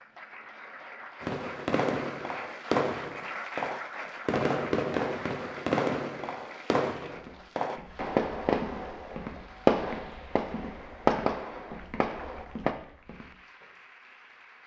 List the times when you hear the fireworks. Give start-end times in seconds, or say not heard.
1.2-12.8.